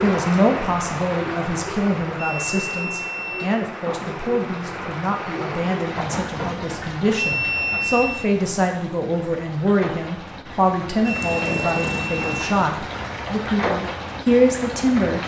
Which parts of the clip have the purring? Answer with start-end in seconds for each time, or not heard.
11.1-12.5.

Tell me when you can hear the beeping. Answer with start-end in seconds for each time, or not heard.
2.1-3.5, 7.2-8.3, 11.1-12.4.